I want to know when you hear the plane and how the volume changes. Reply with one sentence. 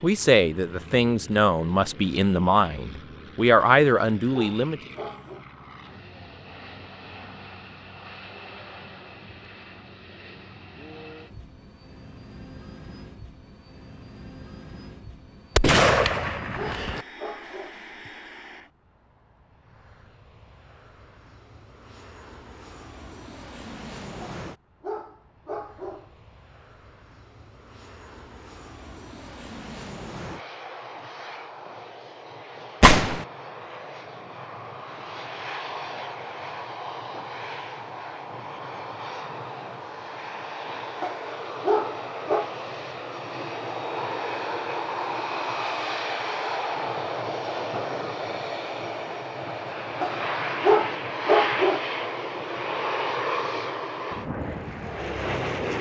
You can hear the plane from 0.0 to 55.7 s, getting louder.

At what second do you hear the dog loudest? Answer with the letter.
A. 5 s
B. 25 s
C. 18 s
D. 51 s
D.